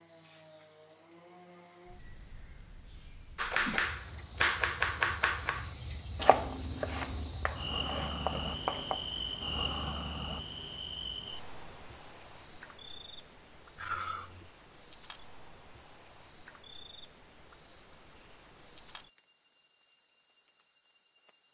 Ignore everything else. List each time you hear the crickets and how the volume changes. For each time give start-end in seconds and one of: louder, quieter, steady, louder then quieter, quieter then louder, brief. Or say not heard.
0.0-21.4 louder then quieter.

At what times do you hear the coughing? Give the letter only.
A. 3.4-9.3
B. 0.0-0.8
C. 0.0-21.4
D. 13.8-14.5
D.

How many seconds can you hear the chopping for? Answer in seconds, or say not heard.
6 s.